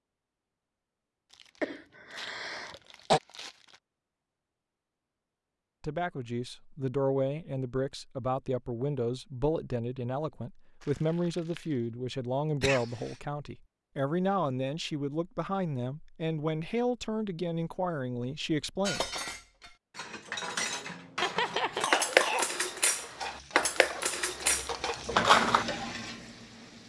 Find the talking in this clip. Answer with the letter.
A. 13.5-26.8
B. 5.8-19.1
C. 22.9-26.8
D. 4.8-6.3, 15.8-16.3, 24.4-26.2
B.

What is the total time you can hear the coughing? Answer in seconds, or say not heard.
4 s.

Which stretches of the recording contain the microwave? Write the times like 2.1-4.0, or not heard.
not heard.